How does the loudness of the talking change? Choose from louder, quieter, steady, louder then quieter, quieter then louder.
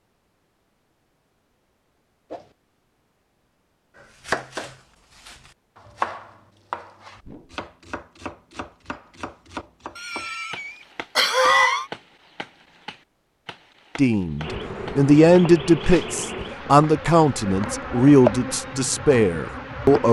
quieter.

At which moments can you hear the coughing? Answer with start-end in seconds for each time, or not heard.
9.9-11.8.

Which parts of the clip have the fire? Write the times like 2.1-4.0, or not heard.
not heard.